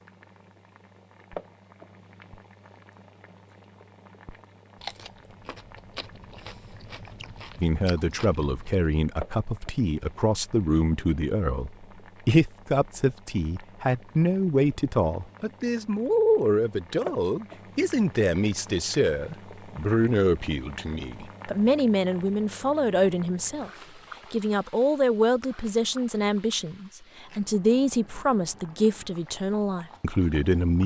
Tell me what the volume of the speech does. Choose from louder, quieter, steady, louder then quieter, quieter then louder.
steady.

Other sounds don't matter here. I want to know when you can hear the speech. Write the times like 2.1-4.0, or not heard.
7.5-23.7, 24.3-30.8.